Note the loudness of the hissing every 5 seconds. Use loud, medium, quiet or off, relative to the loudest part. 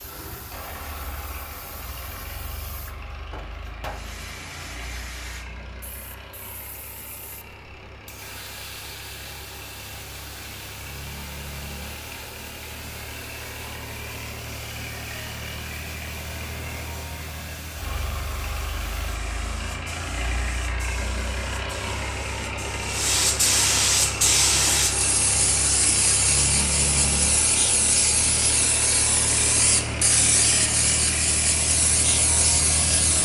quiet, quiet, quiet, quiet, loud, loud, loud.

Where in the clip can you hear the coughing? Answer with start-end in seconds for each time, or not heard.
not heard.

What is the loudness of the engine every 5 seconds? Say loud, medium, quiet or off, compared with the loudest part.
medium, quiet, medium, medium, loud, loud, loud.